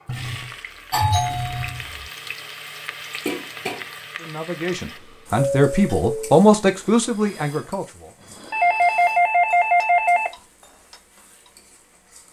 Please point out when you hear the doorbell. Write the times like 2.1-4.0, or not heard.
0.1-1.9, 5.3-6.3, 8.5-10.3.